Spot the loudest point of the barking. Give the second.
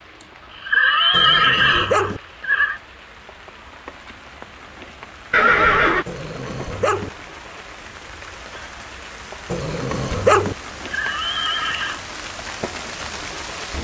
10 s.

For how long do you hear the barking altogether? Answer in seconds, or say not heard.
3 s.